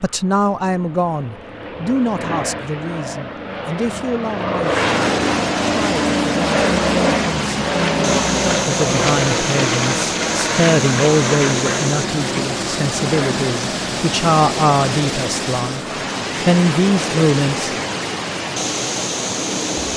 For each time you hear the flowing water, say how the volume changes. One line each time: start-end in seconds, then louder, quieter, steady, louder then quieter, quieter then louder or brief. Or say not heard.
4.6-19.9 steady.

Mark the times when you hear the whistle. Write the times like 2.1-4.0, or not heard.
not heard.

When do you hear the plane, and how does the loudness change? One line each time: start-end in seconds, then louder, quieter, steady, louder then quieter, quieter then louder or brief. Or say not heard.
0.1-19.9 louder then quieter.